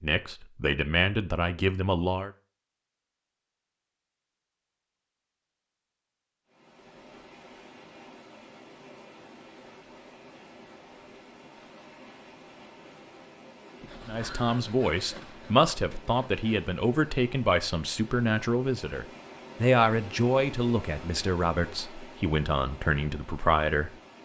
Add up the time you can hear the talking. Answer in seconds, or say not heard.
12 s.